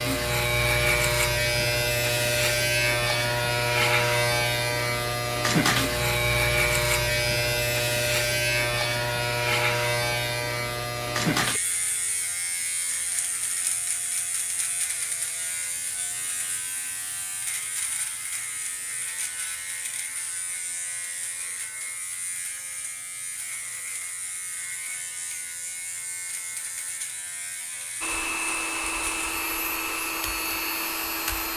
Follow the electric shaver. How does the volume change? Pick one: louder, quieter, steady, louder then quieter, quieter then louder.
quieter.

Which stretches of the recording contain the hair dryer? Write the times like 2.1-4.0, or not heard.
28.0-31.5.